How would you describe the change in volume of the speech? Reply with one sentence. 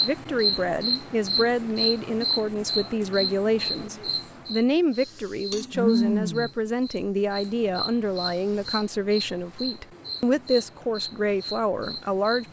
The volume of the speech stays about the same.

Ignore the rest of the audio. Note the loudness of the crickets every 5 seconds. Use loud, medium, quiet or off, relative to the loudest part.
loud, loud, medium.